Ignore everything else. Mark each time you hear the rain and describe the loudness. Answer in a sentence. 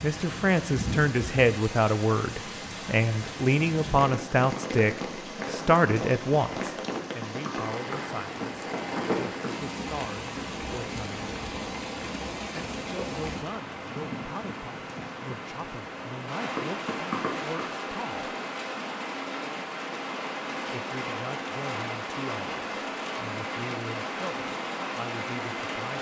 You can hear the rain from 0.0 to 25.9 s, at a steady volume.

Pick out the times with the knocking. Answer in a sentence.
You can hear the knocking from 6.9 to 9.6 s and from 16.6 to 17.7 s.